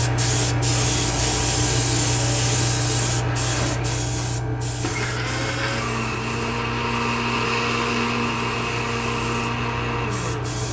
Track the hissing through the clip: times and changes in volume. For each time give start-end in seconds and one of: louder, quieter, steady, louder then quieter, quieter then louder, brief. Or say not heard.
0.0-10.6 quieter.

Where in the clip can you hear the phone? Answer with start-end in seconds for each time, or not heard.
not heard.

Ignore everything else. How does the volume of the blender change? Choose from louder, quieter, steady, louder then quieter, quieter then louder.
louder.